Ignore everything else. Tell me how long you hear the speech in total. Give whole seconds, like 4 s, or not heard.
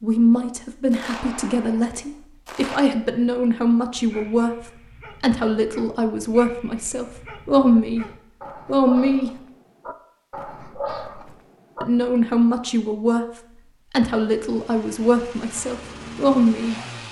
14 s.